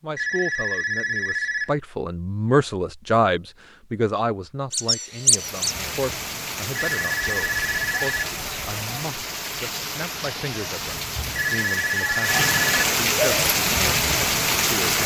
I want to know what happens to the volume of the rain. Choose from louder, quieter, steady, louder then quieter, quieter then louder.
louder.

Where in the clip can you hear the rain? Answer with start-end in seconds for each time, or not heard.
5.2-15.0.